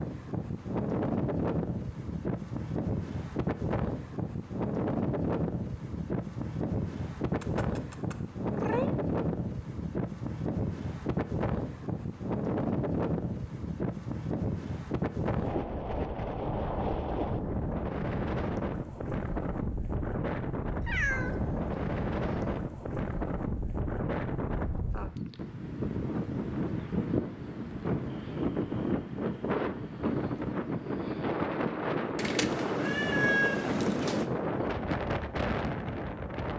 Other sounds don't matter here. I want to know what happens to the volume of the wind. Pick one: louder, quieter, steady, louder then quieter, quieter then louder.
steady.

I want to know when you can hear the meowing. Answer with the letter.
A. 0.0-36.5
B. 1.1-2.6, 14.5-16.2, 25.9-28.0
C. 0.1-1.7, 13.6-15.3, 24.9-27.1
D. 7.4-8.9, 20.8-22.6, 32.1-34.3
D.